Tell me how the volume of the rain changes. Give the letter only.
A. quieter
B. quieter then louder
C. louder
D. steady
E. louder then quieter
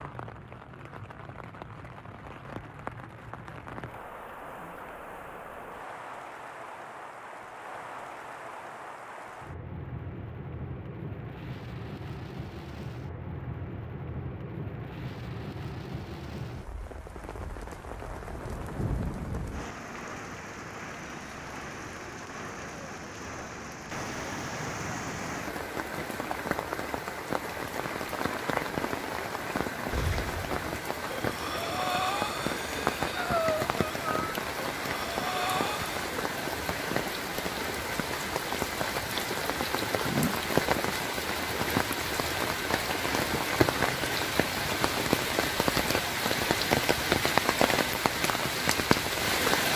C.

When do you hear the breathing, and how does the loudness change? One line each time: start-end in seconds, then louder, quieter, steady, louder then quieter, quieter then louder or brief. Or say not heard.
29.9-36.0 louder.